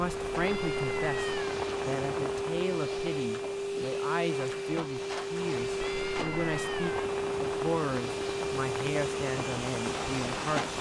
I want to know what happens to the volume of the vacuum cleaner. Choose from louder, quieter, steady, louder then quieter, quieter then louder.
steady.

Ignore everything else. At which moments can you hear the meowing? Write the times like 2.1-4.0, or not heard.
0.4-1.5, 5.8-7.1.